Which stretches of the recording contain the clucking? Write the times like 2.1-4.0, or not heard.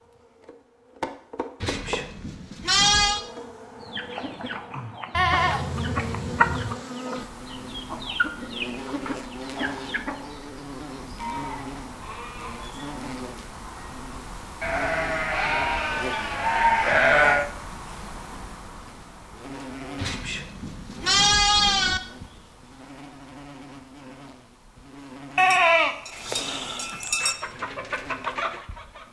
3.8-10.3, 26.1-29.0.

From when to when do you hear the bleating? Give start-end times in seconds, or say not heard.
1.6-3.2, 5.1-6.8, 11.2-12.7, 14.6-17.4, 19.9-22.0, 25.4-27.4.